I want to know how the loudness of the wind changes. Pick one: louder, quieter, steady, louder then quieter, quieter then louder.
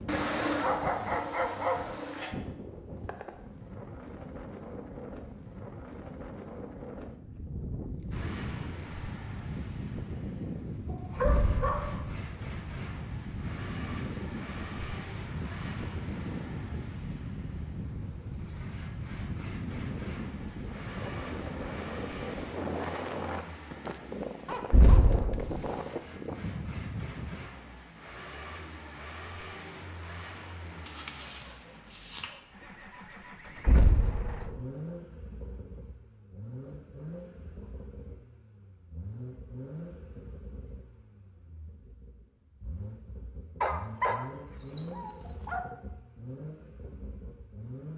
louder.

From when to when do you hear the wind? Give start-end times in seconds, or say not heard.
0.0-27.6.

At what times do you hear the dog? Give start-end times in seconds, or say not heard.
0.1-2.4, 10.8-12.1, 24.4-26.0, 30.9-32.4, 43.6-45.6.